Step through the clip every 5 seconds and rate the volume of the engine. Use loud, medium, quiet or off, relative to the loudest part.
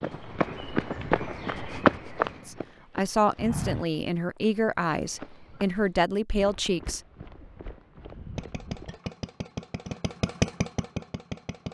off, medium, loud.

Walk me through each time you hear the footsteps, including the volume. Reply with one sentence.
The footsteps can be heard from 0.0 to 9.0 s, getting quieter.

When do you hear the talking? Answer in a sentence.
You can hear the talking from 2.5 to 7.0 s.